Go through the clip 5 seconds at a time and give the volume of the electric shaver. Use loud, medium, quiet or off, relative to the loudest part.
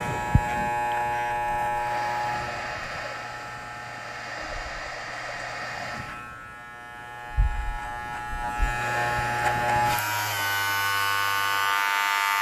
medium, medium, loud.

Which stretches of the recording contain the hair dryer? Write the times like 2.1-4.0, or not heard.
1.7-6.2, 8.8-12.3.